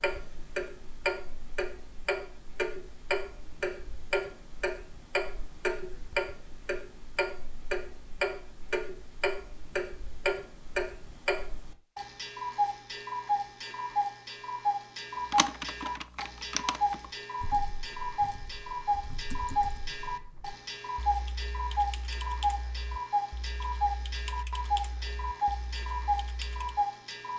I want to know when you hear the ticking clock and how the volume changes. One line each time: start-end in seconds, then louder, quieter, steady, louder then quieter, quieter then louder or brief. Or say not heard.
0.0-27.3 steady.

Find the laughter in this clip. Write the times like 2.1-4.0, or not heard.
not heard.